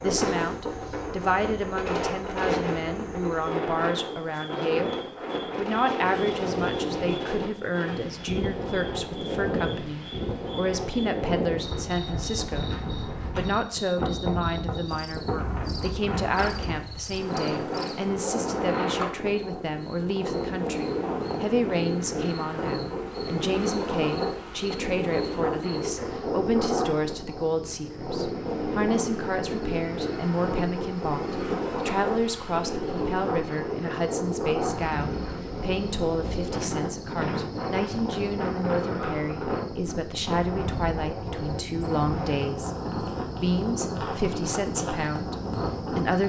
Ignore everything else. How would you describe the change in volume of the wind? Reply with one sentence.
The volume of the wind stays about the same.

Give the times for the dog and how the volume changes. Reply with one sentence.
The dog can't be heard in this clip.